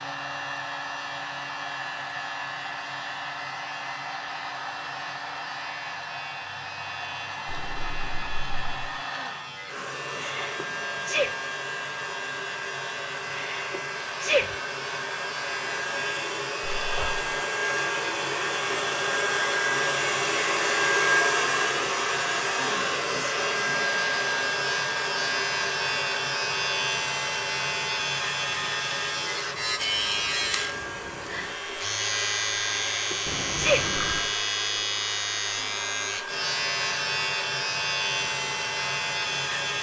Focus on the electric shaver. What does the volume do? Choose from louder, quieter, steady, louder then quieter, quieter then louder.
louder.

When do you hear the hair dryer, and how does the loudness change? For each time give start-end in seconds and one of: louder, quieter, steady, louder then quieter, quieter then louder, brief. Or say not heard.
0.0-39.7 louder then quieter.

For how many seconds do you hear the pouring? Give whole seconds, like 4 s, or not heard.
3 s.